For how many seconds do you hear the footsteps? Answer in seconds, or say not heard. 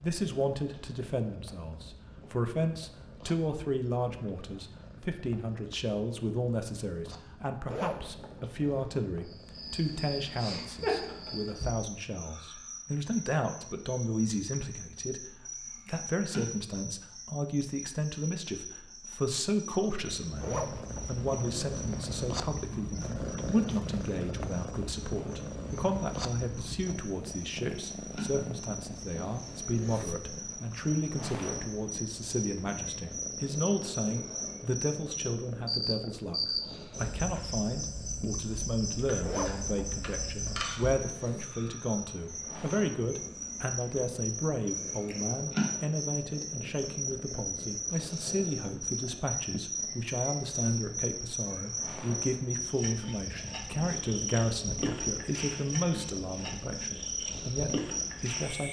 not heard.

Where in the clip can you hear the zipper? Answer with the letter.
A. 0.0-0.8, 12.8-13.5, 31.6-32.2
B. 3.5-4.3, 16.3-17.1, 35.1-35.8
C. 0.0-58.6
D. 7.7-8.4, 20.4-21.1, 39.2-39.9
D.